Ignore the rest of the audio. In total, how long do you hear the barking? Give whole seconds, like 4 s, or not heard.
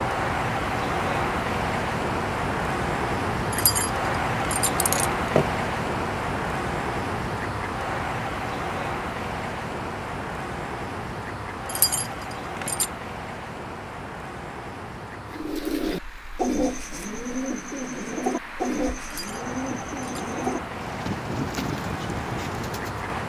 not heard.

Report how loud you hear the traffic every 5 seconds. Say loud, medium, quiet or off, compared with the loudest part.
loud, loud, medium, quiet, medium.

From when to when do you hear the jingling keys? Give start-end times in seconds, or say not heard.
3.5-5.5, 11.7-12.9, 19.1-20.2.